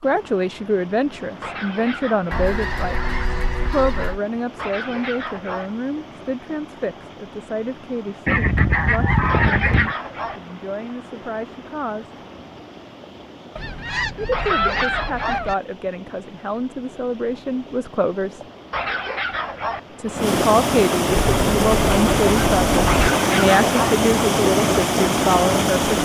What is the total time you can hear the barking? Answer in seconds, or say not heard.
7 s.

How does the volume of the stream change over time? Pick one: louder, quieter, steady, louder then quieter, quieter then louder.
louder.